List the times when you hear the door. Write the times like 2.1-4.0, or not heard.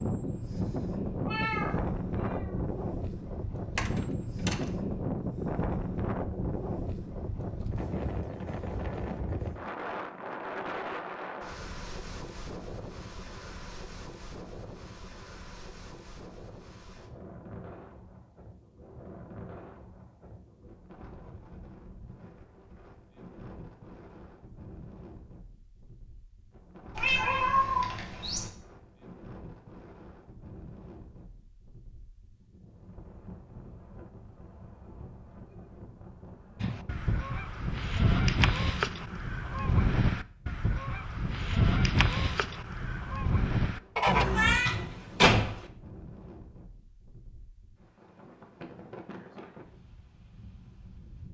3.8-4.8, 44.4-45.6.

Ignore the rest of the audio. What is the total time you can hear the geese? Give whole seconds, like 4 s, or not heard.
8 s.